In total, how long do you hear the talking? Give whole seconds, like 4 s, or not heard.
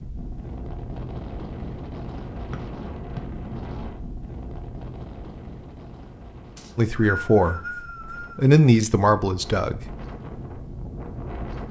3 s.